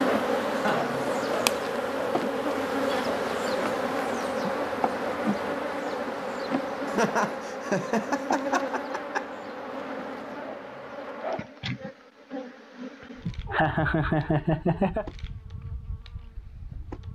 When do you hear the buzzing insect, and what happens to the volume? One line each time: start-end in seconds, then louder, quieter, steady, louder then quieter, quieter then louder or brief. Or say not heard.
0.0-17.0 quieter.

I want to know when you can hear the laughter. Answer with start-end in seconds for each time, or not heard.
0.5-1.2, 6.8-9.2, 13.2-15.1.